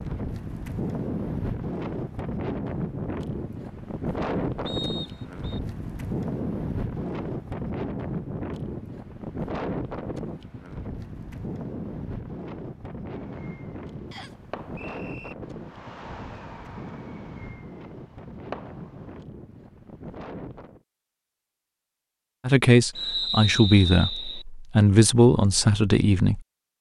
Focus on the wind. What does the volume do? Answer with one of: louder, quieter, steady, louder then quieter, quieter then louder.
quieter.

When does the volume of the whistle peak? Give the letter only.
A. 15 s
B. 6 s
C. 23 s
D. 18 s
C.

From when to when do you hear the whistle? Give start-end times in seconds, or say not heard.
4.7-5.6, 14.1-15.3, 22.9-24.4.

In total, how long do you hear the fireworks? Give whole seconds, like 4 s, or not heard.
6 s.